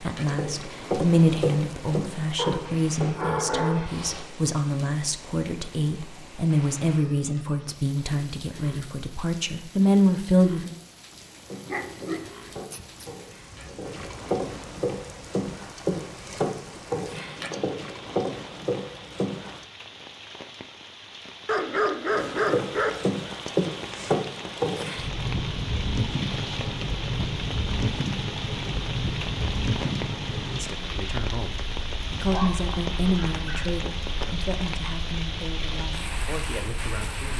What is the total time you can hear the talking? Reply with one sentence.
You can hear the talking for 18 seconds altogether.